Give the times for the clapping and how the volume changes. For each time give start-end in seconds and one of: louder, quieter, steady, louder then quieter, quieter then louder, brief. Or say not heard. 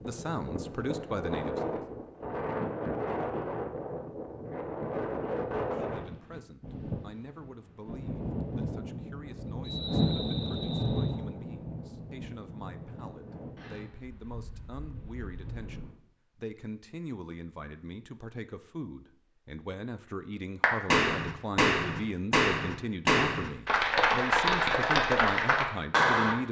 20.6-26.4 steady.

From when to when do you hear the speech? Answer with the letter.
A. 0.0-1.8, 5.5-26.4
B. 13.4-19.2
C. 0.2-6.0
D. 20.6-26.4
A.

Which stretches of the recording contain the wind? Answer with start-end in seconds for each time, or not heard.
0.0-15.9.